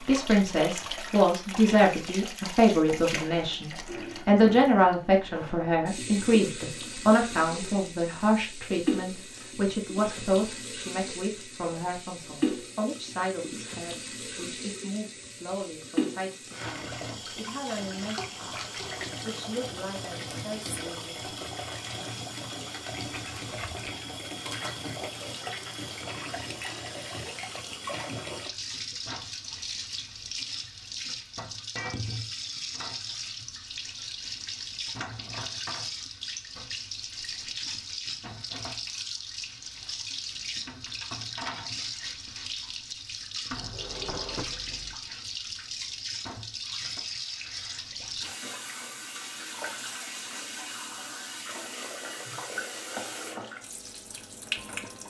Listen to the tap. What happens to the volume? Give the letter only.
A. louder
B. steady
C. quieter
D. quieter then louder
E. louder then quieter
B.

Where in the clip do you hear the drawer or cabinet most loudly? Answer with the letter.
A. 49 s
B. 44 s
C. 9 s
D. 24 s
B.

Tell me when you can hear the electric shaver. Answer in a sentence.
You can't hear the electric shaver here.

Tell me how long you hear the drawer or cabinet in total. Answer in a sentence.
You can hear the drawer or cabinet for 2 seconds altogether.